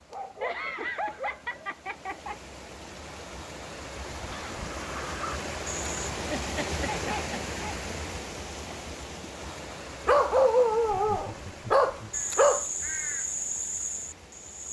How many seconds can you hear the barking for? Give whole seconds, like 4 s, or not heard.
5 s.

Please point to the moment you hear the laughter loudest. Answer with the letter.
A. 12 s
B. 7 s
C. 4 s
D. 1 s
D.